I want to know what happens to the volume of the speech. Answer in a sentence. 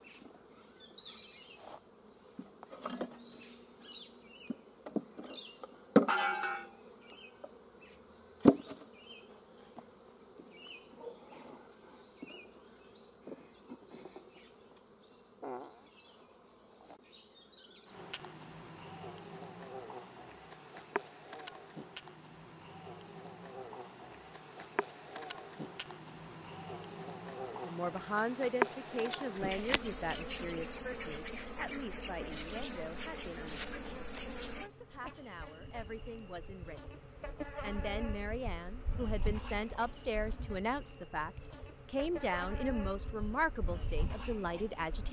The loudness of the speech goes down, then up.